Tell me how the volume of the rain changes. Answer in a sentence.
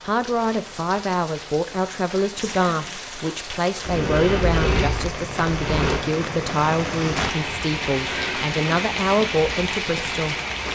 The volume of the rain goes up.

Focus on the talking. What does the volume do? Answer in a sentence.
The volume of the talking stays about the same.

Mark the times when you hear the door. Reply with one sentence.
The door can be heard from 3.9 to 6.0 s.